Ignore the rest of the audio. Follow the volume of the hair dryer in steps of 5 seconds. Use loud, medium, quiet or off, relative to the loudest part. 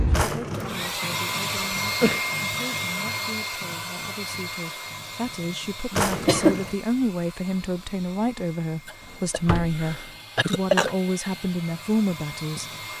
loud, quiet, medium.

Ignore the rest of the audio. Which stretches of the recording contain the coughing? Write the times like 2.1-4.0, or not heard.
1.6-2.2, 6.0-6.6, 8.8-10.9.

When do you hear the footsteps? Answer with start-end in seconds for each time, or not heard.
not heard.